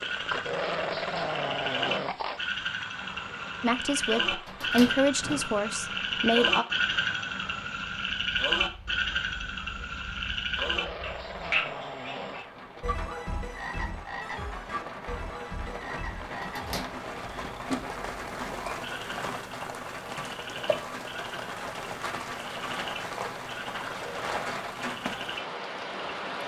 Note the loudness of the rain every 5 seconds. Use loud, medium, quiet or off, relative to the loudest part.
medium, quiet, medium, loud, loud, loud.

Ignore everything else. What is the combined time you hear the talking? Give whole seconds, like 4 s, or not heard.
3 s.